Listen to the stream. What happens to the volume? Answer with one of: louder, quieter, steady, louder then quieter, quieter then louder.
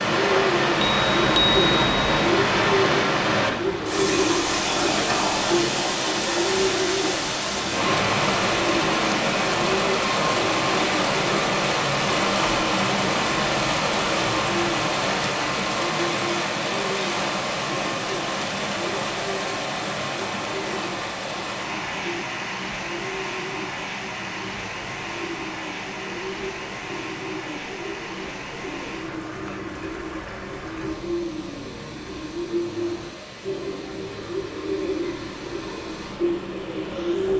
quieter.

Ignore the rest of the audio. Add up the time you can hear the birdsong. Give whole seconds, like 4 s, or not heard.
37 s.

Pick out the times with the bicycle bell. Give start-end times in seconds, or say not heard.
0.8-2.3.